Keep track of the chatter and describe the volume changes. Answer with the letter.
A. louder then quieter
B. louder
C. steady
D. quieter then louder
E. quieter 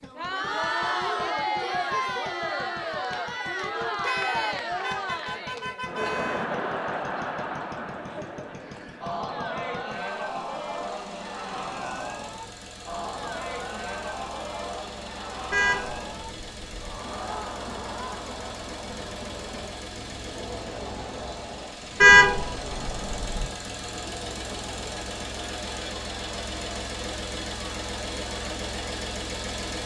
E.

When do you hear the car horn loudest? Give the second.
22 s.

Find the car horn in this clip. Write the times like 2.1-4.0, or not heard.
4.0-6.5, 15.5-16.9, 22.0-23.4.